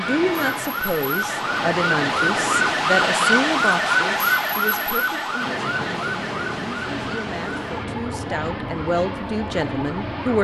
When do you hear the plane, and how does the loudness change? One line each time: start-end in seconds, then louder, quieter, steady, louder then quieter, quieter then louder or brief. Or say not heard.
0.0-2.8 brief
5.3-10.3 steady.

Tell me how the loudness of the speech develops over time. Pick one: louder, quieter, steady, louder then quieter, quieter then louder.
quieter then louder.